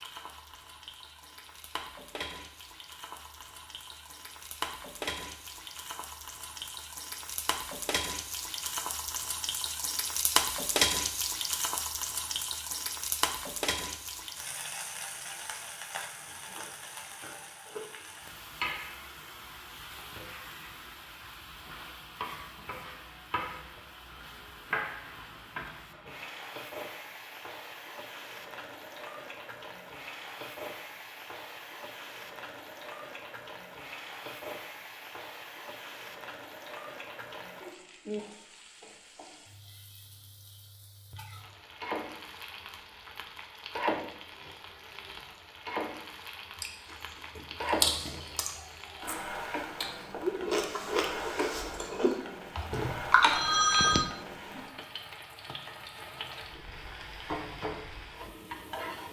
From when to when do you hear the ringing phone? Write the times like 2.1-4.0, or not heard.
52.7-54.0.